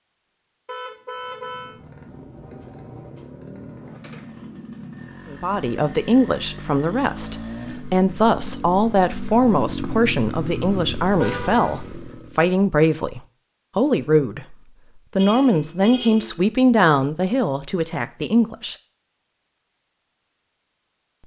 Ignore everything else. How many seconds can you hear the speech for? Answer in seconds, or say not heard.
13 s.